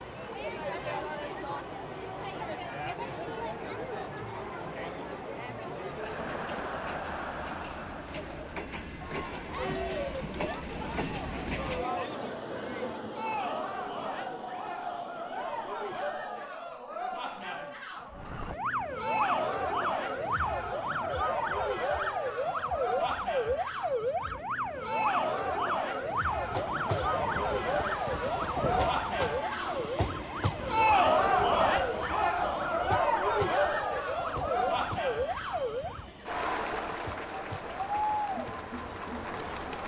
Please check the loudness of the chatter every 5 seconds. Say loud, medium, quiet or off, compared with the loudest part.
medium, medium, medium, medium, medium, medium, loud, medium.